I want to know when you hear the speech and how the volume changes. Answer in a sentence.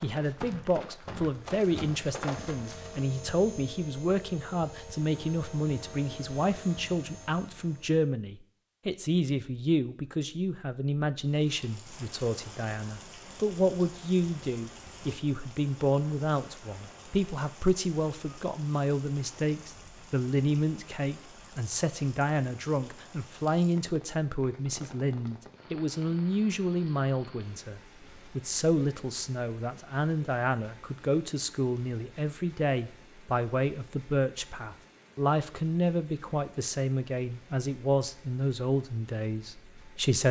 The speech can be heard from 0.0 to 40.2 s, at a steady volume.